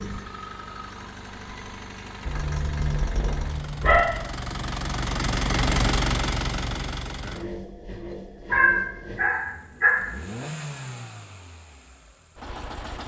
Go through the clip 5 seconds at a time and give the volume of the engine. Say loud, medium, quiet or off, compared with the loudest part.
medium, loud, medium.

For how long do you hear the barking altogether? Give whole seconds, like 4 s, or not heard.
3 s.